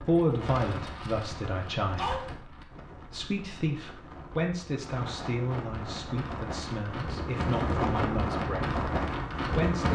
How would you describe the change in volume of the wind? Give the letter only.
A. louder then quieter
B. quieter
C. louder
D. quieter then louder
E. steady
D.